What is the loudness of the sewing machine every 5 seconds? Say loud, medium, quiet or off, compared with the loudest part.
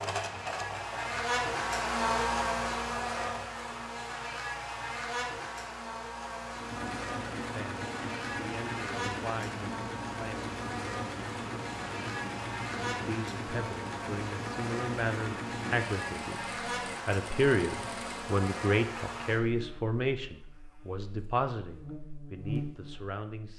loud, loud, loud, loud, off.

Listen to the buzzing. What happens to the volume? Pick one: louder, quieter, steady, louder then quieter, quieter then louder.
quieter.